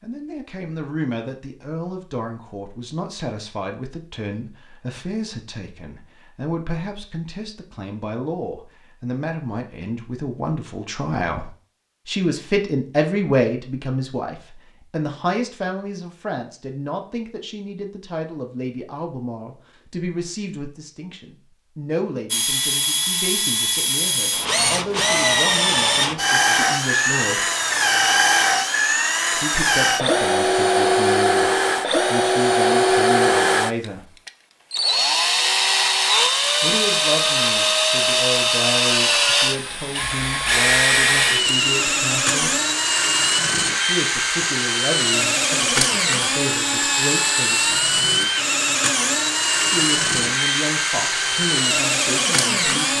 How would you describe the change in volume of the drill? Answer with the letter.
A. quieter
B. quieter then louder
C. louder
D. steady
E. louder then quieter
D.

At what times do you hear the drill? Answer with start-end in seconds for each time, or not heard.
22.3-52.9.